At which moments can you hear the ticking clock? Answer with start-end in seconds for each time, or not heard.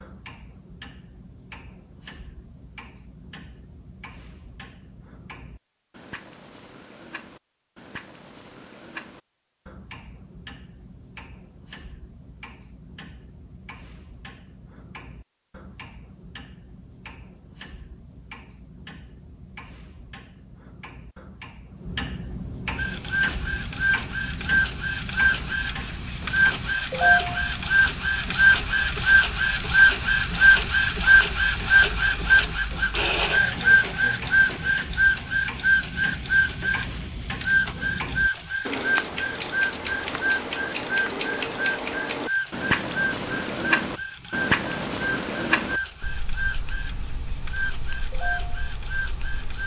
0.0-49.6.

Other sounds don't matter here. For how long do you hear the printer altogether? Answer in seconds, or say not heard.
27 s.